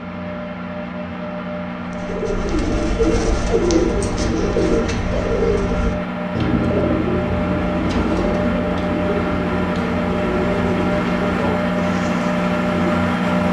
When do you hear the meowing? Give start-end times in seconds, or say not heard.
not heard.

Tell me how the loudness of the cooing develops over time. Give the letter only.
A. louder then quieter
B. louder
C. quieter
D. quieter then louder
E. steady
C.